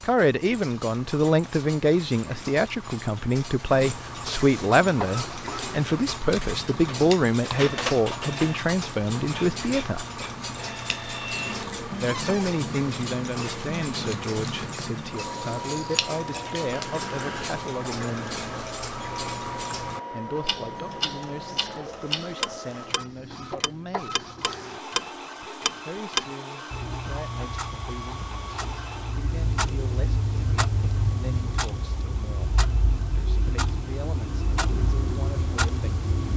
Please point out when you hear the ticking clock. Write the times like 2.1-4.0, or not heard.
0.0-36.3.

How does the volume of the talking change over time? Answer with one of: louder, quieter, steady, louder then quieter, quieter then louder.
quieter.